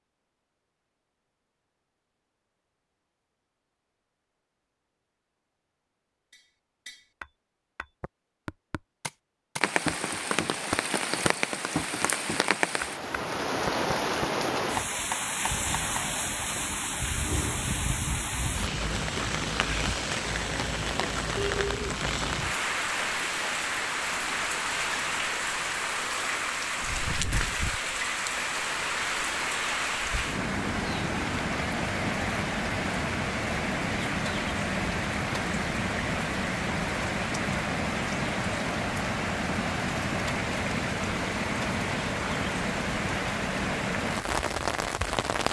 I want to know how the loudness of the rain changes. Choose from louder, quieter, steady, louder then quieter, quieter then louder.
steady.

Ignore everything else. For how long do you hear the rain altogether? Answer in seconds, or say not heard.
36 s.